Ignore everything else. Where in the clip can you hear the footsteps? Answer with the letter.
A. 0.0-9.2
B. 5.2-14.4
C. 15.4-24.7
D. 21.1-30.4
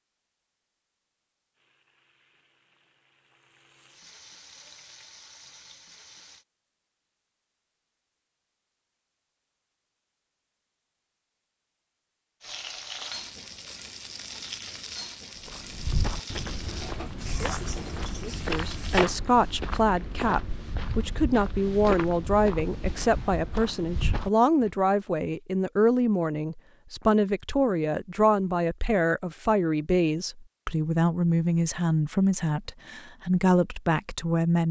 C.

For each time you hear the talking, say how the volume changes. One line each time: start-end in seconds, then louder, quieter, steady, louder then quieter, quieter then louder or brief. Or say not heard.
18.3-34.6 steady.